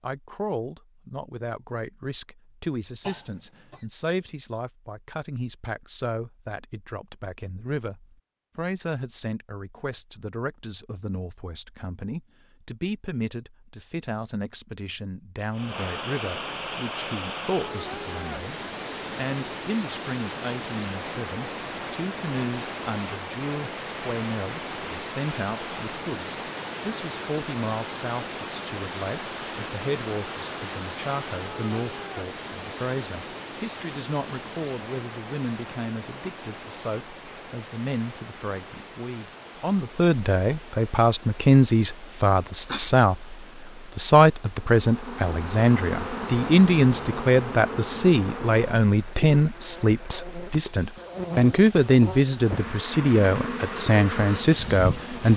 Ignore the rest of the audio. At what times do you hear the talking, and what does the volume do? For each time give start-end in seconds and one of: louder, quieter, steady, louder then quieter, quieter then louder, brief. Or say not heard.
0.0-55.3 louder.